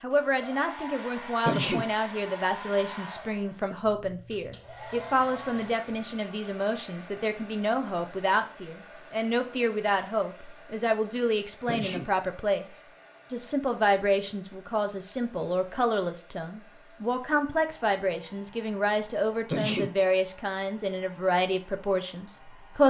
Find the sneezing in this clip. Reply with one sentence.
The sneezing can be heard from 1.4 to 1.9 s, from 11.7 to 12.1 s and from 19.5 to 19.9 s.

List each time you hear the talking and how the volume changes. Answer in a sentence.
You can hear the talking from 0.0 to 22.8 s, at a steady volume.